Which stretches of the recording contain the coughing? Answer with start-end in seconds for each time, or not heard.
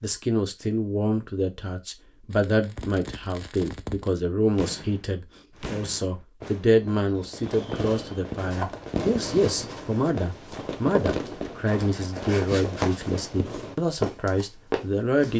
not heard.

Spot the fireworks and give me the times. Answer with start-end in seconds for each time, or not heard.
2.3-13.8.